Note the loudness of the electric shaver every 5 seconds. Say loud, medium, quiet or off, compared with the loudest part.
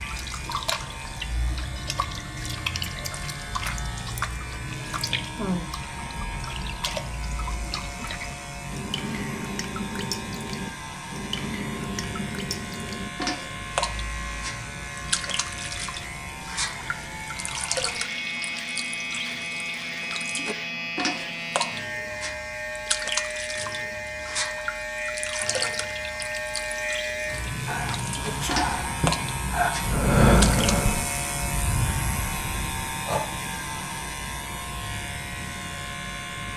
medium, medium, medium, loud, loud, loud, loud, loud.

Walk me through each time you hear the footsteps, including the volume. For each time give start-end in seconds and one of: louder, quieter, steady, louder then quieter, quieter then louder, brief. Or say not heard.
not heard.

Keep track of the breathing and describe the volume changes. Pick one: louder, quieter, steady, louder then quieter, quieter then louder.
louder then quieter.